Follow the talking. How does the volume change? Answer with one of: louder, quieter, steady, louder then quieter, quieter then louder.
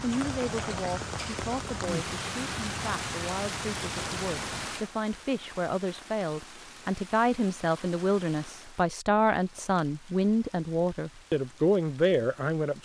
louder.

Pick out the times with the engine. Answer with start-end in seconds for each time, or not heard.
0.0-4.7.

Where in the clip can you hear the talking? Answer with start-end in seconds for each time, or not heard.
0.0-12.7.